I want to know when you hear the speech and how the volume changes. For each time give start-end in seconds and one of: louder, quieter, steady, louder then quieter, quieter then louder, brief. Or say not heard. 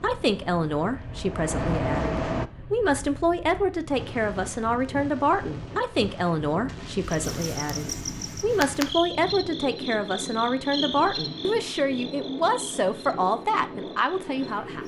0.0-14.8 steady.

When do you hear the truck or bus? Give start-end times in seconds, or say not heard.
0.0-2.5.